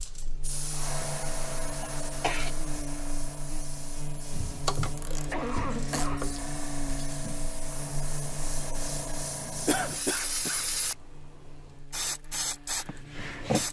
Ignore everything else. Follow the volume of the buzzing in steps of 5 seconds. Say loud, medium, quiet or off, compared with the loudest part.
loud, loud, quiet.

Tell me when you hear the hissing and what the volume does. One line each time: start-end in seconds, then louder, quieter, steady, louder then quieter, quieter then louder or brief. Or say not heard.
0.0-10.9 quieter then louder
11.9-13.6 brief.